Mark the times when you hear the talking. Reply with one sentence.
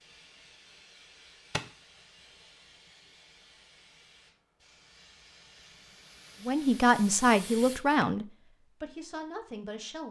You can hear the talking from 6.4 to 10.0 s.